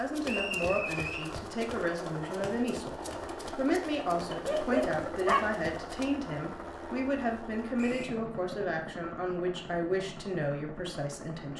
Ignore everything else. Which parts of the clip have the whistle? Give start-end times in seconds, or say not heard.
0.2-1.2, 7.8-8.2.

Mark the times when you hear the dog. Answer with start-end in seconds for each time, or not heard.
4.3-5.4.